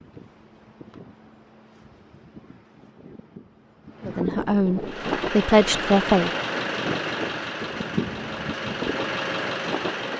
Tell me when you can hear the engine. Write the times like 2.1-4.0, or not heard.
4.8-10.1.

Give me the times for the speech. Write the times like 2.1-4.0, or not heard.
4.0-6.3.